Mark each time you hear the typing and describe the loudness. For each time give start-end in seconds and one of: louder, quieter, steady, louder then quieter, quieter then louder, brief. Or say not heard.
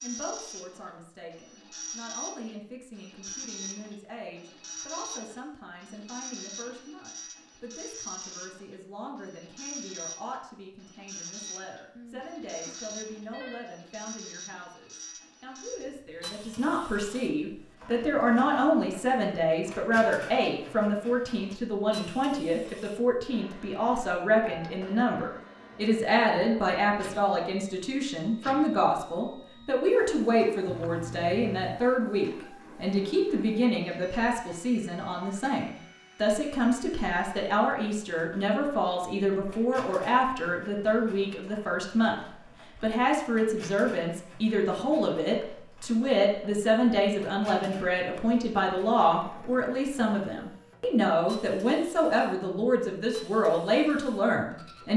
not heard.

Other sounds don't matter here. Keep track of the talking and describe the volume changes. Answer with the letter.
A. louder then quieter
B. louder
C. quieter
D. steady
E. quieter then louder
B.